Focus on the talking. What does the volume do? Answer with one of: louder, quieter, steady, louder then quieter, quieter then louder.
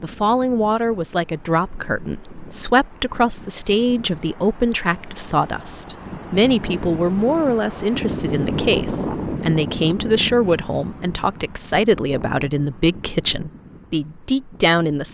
steady.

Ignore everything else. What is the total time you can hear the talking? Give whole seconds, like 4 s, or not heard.
15 s.